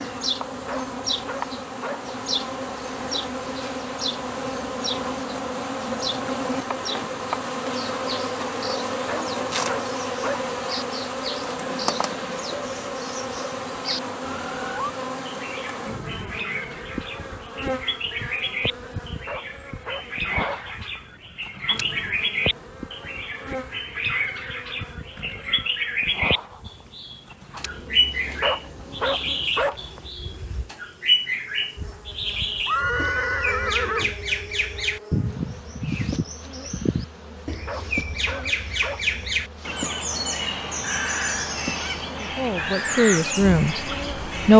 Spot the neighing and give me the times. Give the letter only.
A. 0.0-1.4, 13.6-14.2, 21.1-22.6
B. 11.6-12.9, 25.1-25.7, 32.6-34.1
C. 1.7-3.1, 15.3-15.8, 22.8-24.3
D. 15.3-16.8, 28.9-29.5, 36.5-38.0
B.